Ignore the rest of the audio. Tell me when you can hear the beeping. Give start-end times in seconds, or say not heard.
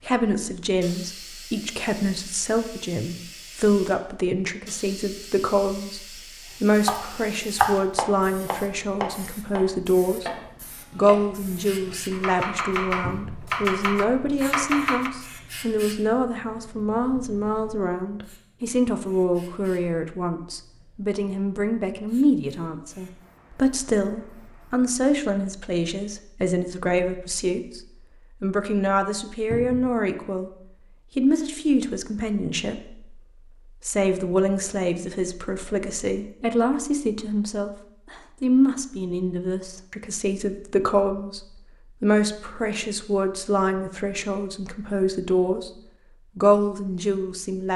not heard.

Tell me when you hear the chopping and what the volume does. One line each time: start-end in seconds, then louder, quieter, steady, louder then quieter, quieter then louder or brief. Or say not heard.
6.8-15.1 quieter then louder.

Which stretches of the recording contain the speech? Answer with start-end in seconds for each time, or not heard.
0.0-10.3, 10.9-30.5, 31.1-45.7, 46.4-47.7.